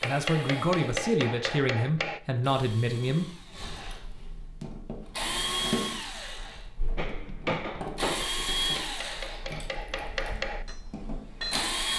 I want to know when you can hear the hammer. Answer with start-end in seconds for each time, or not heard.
0.0-2.2, 7.0-11.7.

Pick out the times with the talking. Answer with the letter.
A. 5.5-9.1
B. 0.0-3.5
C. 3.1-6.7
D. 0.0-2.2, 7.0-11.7
B.